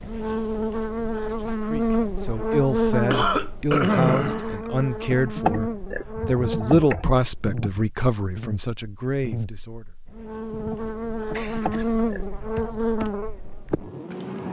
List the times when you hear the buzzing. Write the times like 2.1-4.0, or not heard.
0.0-14.4.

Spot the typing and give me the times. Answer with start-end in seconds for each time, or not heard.
5.1-7.8, 10.5-14.4.